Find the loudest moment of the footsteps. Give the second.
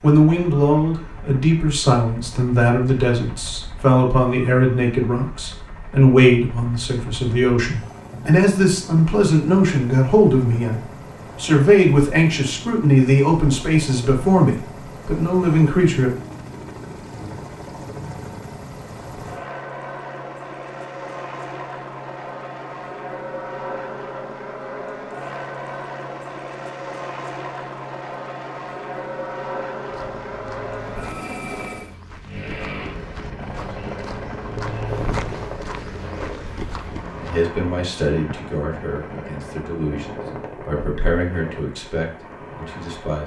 35 s.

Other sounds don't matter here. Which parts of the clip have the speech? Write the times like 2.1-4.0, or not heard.
0.0-16.1, 37.1-43.2.